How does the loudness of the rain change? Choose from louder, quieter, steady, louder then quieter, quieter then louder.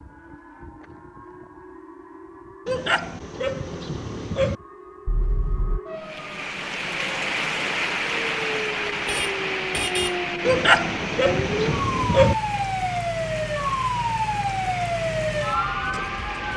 quieter.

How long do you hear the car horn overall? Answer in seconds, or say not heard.
2 s.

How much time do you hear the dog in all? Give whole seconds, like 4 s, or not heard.
4 s.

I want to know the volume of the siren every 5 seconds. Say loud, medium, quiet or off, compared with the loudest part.
quiet, medium, loud, loud.